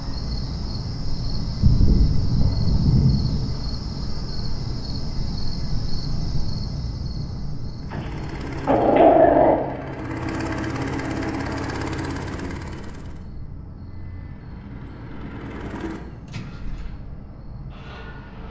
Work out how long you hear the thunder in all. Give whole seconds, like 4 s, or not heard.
2 s.